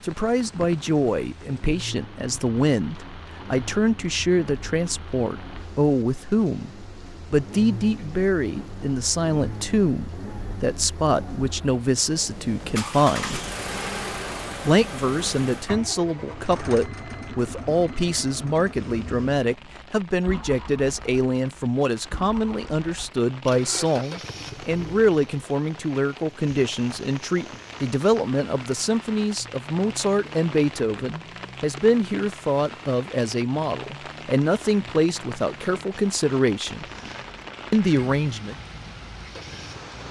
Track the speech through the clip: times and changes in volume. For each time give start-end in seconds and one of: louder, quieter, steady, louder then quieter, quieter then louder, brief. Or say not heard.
0.0-13.4 steady
14.7-36.9 steady
37.7-38.5 brief.